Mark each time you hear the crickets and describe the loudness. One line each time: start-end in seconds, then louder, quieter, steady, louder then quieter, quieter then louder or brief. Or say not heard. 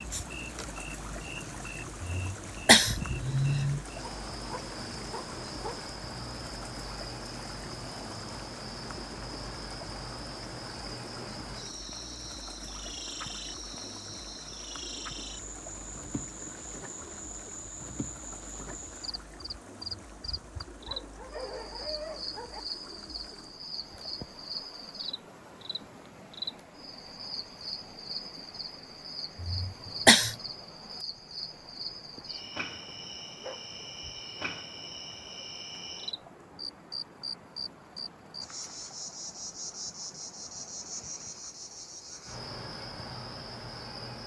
0.0-44.2 steady.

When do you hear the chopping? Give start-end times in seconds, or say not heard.
not heard.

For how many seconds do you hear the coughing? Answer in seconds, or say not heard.
3 s.